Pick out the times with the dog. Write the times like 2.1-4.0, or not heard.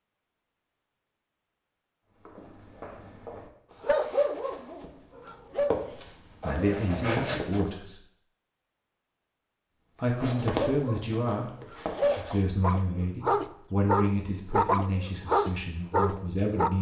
3.8-7.0, 10.6-16.7.